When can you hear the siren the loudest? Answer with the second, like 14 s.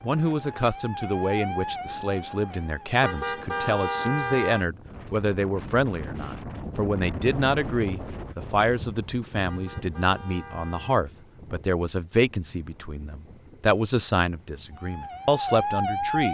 16 s.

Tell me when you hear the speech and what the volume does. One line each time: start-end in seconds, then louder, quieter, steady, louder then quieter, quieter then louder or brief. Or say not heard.
0.0-16.2 steady.